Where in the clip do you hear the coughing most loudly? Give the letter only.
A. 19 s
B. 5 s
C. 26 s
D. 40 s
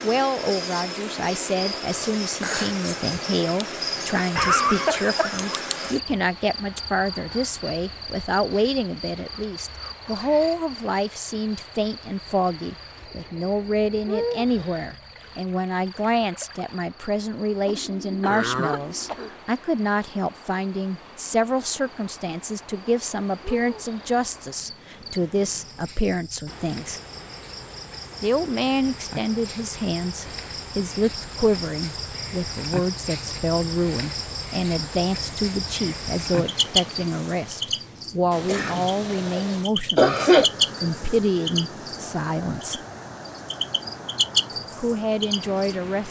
D.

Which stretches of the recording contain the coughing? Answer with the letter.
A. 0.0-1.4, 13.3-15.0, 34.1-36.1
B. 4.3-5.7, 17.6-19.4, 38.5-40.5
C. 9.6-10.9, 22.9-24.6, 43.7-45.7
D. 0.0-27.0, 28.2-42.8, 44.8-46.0
B.